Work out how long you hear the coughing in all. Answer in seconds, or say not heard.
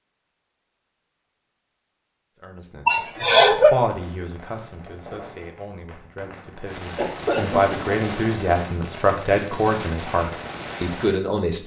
2 s.